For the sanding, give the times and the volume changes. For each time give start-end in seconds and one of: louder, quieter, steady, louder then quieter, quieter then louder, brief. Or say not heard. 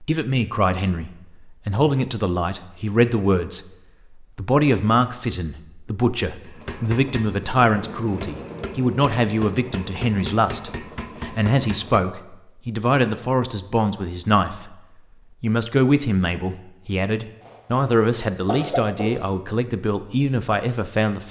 not heard.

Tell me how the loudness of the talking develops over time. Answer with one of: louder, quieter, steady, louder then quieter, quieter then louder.
steady.